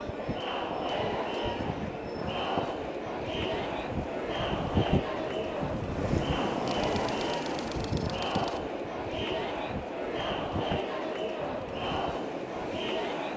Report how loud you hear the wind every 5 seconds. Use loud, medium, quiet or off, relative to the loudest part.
loud, loud, medium.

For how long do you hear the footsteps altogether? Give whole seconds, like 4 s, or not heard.
not heard.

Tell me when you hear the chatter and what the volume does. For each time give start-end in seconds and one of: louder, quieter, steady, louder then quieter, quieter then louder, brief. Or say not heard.
0.0-13.3 steady.